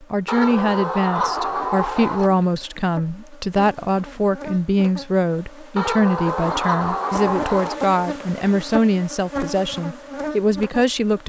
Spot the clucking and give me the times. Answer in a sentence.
You can hear the clucking from 0.2 to 2.3 s and from 5.8 to 7.8 s.